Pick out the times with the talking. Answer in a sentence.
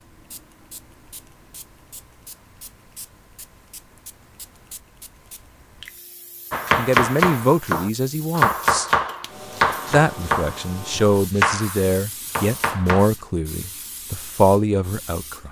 The talking can be heard from 6.8 to 8.8 s and from 9.9 to 15.4 s.